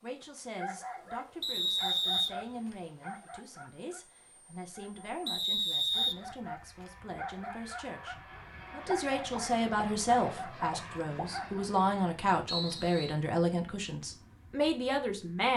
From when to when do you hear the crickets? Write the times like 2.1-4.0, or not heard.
not heard.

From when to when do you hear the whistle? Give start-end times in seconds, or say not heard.
1.4-2.8, 5.2-6.7, 12.4-13.2.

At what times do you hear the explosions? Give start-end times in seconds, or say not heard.
8.8-11.3.